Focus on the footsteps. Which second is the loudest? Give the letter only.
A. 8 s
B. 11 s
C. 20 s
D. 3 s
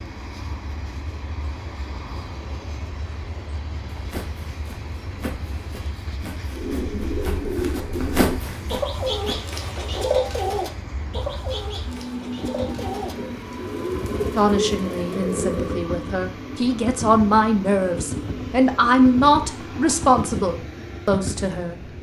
A.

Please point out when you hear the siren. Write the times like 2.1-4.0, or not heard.
not heard.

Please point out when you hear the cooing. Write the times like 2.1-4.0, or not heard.
6.5-15.8.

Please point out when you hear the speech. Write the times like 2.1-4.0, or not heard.
14.3-21.8.